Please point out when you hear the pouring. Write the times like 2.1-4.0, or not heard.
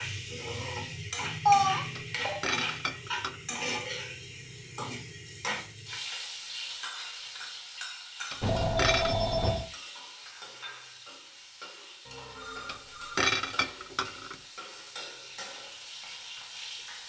not heard.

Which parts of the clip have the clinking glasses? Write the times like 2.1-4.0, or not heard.
1.9-3.4, 8.3-9.2, 12.7-14.3.